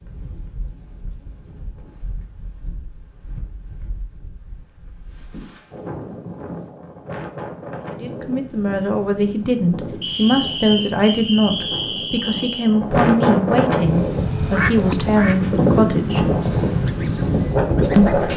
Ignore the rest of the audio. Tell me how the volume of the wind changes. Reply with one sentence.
The loudness of the wind goes up.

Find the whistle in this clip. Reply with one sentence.
You can hear the whistle from 10.0 to 12.8 s.